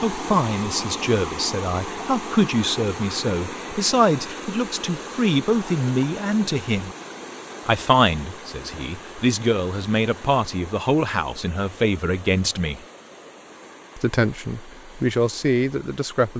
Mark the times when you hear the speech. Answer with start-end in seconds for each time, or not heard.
0.0-7.0, 7.7-12.8, 13.9-16.3.